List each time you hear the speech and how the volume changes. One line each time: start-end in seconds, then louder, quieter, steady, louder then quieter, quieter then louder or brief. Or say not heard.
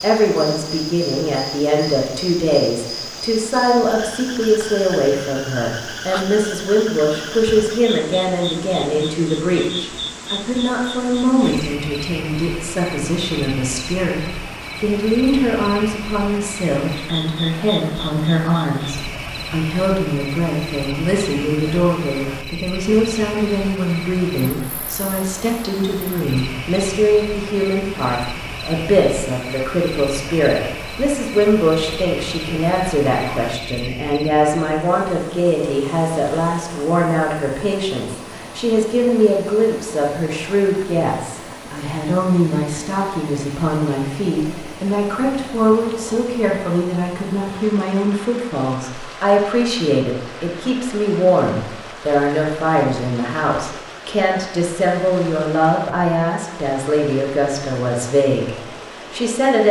0.0-58.5 steady
59.1-59.6 brief.